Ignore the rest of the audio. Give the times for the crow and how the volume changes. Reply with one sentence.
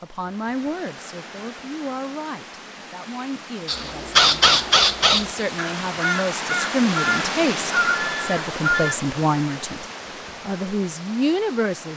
The crow can be heard from 3.6 to 8.9 s, getting quieter.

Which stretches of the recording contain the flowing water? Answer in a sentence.
You can hear the flowing water from 0.0 to 11.9 s.